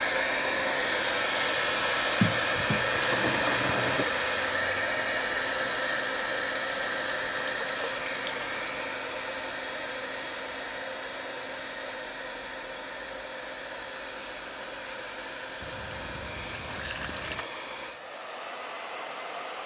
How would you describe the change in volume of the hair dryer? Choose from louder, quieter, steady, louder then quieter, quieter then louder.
quieter.